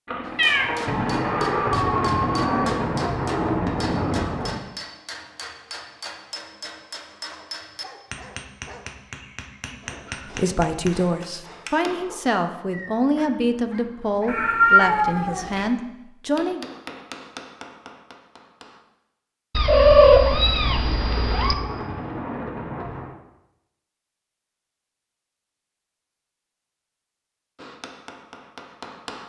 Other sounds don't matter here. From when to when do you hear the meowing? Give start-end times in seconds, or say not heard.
0.3-2.8, 14.2-15.7, 19.6-21.6.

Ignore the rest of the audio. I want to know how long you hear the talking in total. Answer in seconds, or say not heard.
6 s.